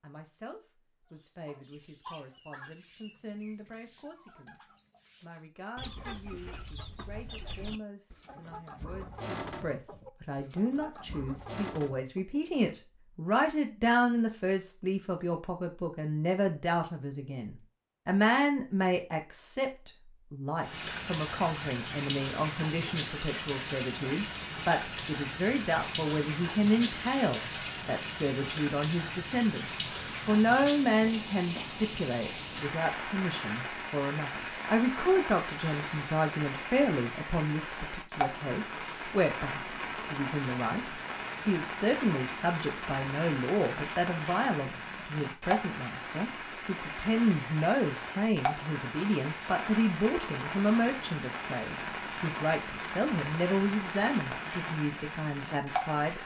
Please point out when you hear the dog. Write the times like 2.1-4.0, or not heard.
not heard.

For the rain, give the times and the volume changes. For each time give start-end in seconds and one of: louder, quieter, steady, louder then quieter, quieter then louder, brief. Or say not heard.
20.6-56.2 steady.